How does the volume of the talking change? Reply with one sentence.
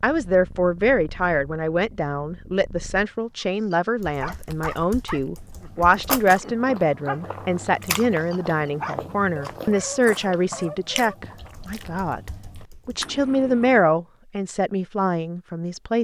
The loudness of the talking stays about the same.